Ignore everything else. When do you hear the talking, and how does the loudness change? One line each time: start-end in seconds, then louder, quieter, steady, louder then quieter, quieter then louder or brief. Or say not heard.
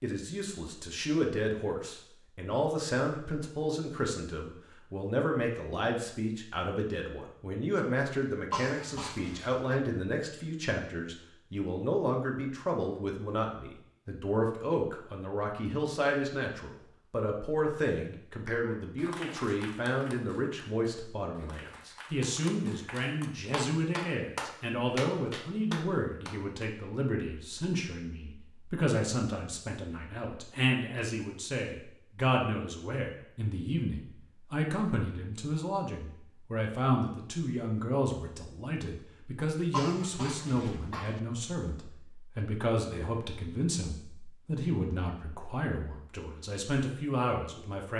0.0-47.9 steady.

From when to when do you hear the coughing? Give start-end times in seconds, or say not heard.
8.5-9.8, 39.7-41.2.